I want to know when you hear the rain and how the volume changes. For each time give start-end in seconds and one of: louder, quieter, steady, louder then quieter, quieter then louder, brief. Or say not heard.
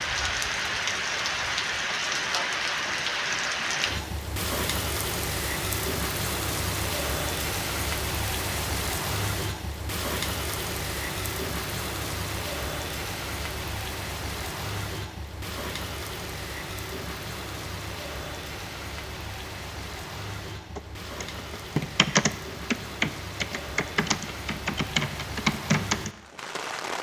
0.0-26.9 quieter.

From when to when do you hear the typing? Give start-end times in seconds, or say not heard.
20.8-26.1.